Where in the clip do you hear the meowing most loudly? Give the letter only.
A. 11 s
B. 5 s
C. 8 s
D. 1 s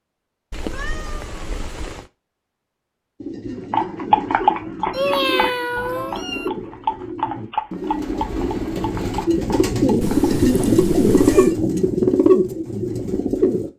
B.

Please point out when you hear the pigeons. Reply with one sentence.
The pigeons can be heard from 3.2 to 13.7 s.